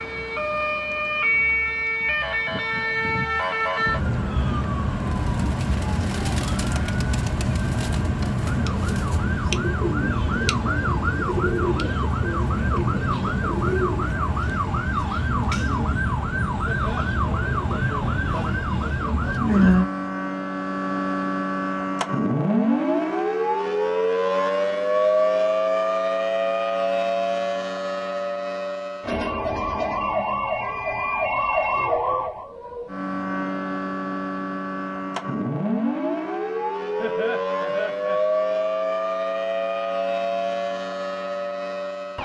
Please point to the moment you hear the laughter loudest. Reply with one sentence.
The volume of the laughter peaks at 37 seconds.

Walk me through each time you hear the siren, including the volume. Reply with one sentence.
The siren can be heard from 0.0 to 42.2 s, at a steady volume.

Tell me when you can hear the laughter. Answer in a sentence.
The laughter can be heard from 16.6 to 17.1 s and from 37.0 to 38.2 s.